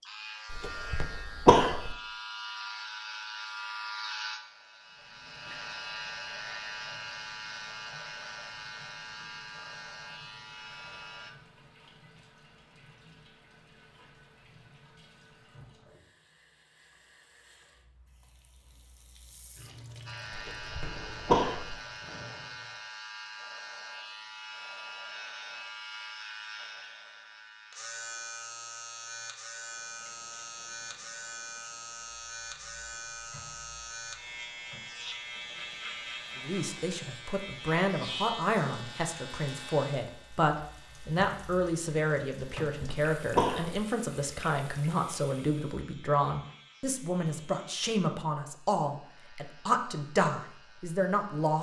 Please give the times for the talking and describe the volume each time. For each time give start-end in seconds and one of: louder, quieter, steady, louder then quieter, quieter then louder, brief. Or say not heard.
36.4-51.5 steady.